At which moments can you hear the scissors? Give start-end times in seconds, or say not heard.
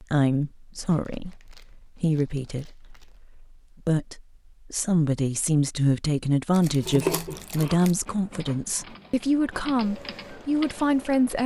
6.8-7.8.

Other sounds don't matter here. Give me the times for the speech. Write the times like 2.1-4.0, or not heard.
0.0-11.4.